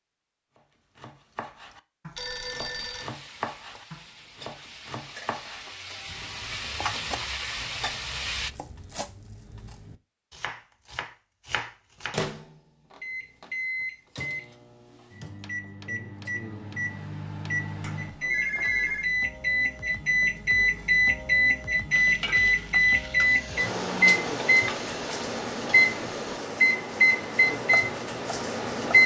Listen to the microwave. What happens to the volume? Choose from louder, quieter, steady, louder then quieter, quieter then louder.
louder.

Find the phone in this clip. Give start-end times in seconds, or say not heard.
2.1-3.1, 17.8-19.1.